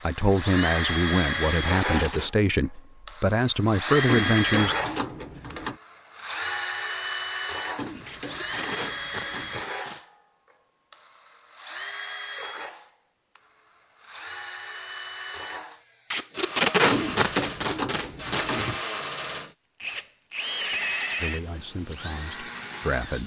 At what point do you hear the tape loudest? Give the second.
17 s.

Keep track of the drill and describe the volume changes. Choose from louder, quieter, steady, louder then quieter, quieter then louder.
quieter then louder.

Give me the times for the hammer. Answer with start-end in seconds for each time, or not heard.
not heard.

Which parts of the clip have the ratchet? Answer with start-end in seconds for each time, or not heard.
4.0-5.8, 7.8-9.7, 16.9-18.8.